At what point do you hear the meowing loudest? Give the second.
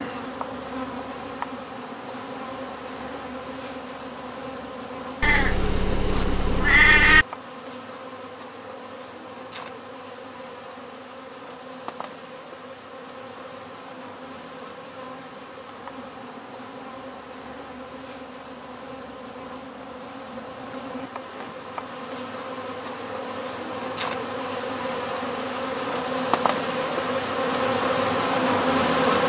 7 s.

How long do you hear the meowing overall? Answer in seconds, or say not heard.
2 s.